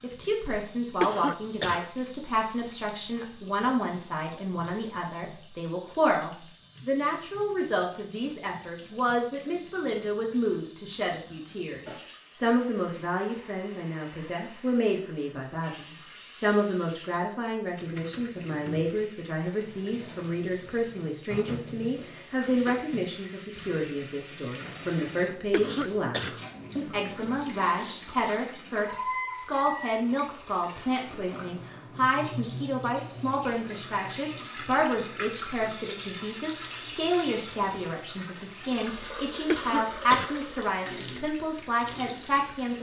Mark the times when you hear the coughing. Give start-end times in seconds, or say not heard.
1.0-1.9, 25.5-26.4, 39.5-40.4.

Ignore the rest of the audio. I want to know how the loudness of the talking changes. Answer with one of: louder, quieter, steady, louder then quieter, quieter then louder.
steady.